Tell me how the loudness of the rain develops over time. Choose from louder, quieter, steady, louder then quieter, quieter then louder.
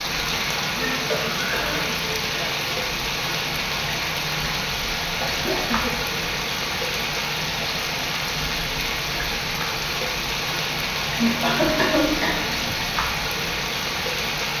steady.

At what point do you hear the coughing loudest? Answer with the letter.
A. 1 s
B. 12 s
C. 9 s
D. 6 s
B.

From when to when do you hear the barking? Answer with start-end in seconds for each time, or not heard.
not heard.